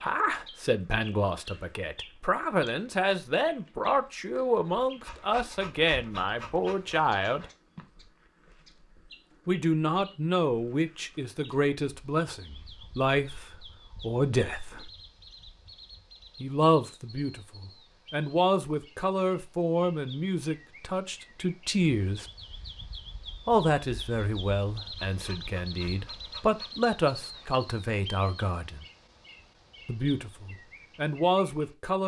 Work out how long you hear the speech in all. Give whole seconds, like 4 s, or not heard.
26 s.